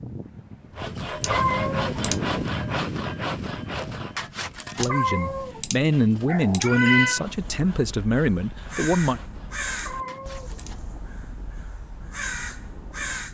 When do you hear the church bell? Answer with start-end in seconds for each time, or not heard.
not heard.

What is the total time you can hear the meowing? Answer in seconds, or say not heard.
5 s.